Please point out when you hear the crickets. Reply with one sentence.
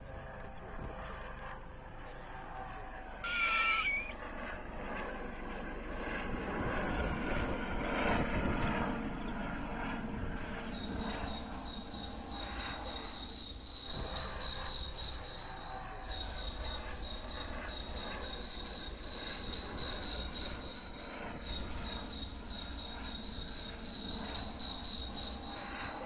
The crickets can be heard from 8.3 to 26.0 s.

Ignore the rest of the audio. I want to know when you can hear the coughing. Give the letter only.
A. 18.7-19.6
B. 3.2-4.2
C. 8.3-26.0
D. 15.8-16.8
B.